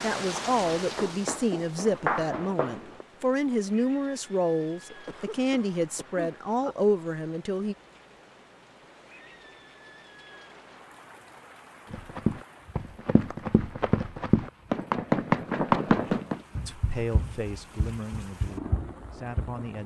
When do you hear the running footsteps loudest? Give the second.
16 s.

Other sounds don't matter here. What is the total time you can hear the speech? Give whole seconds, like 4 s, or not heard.
11 s.